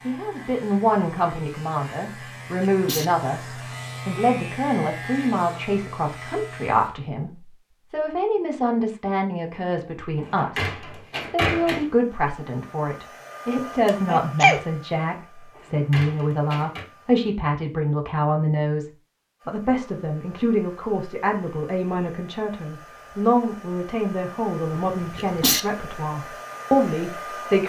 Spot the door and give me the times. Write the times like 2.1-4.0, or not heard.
10.2-11.9, 15.5-16.9.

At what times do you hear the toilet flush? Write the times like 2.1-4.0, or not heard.
not heard.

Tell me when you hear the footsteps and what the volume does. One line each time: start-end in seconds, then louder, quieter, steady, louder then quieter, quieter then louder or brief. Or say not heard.
not heard.